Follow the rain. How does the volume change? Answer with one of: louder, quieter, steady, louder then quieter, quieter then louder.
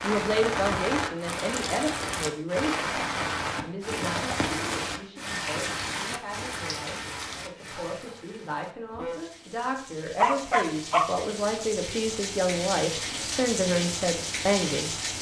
quieter then louder.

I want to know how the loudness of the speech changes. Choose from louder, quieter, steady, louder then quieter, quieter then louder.
quieter then louder.